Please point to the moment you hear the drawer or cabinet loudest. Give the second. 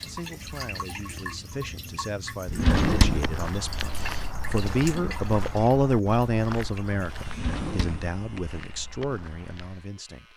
3 s.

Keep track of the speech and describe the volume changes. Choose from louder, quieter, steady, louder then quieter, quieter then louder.
louder then quieter.